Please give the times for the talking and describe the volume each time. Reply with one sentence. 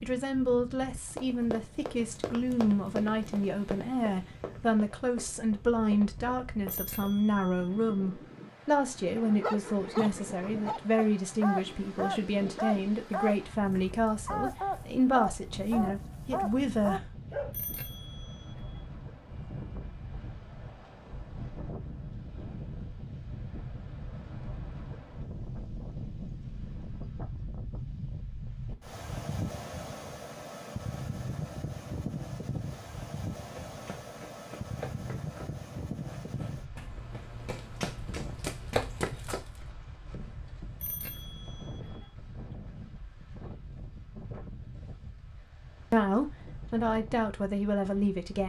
You can hear the talking from 0.0 to 17.0 s, at a steady volume; and briefly from 45.9 to 48.4 s.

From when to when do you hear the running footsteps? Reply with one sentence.
The running footsteps can be heard from 0.8 to 7.1 s and from 33.5 to 39.6 s.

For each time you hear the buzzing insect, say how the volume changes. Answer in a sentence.
The buzzing insect can't be heard in this clip.